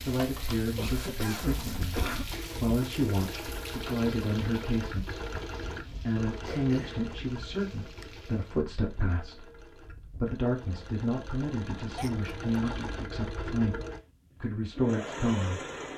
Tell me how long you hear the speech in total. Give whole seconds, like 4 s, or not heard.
14 s.